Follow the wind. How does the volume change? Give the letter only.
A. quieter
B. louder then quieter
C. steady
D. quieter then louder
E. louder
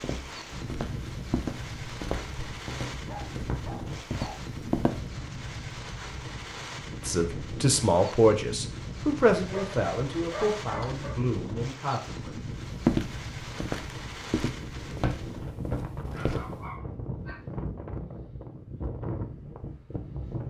C.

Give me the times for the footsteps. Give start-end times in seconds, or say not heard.
0.0-5.1, 12.8-16.6.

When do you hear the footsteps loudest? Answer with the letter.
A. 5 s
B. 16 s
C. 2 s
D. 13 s
D.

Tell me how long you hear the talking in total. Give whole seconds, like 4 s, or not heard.
5 s.